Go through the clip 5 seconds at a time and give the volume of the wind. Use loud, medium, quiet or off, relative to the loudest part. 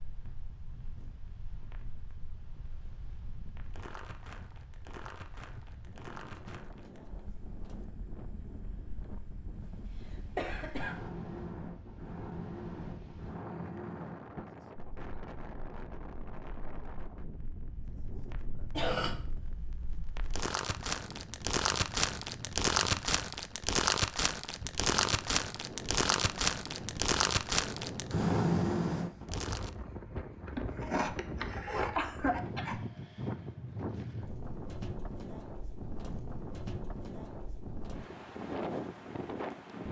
quiet, medium, medium, medium, medium, loud, loud, loud.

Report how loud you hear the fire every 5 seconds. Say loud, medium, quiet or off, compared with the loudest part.
quiet, quiet, quiet, quiet, loud, loud, off, off.